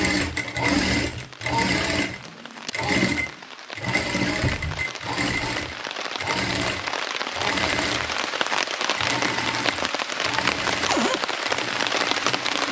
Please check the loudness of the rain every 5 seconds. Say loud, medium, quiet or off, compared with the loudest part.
quiet, loud, loud.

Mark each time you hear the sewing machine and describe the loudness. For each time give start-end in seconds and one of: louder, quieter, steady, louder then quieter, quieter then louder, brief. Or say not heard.
0.0-12.6 quieter.